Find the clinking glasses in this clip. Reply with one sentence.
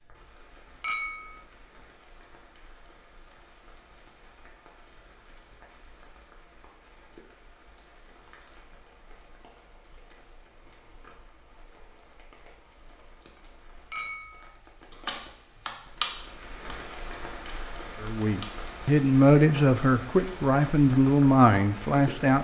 You can hear the clinking glasses from 0.8 to 1.4 s and from 13.9 to 14.5 s.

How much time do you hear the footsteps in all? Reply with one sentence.
The footsteps can't be heard in this clip.